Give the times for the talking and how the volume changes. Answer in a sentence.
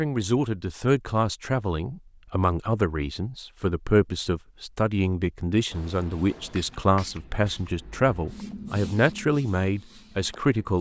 You can hear the talking from 0.0 to 10.7 s, at a steady volume.